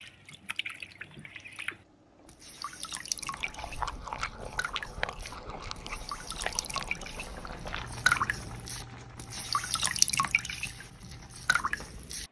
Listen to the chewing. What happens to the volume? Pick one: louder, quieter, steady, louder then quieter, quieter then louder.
quieter.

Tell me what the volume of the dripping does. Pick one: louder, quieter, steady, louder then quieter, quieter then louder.
louder.